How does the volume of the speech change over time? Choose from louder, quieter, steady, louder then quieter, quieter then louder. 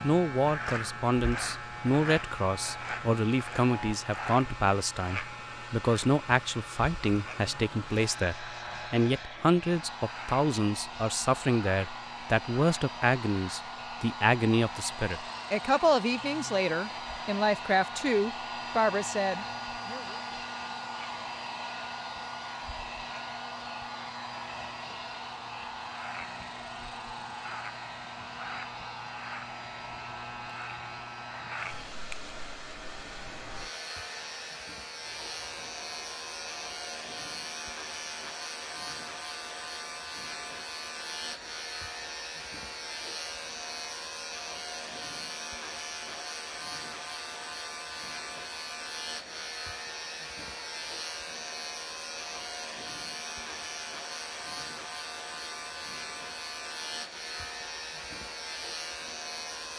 steady.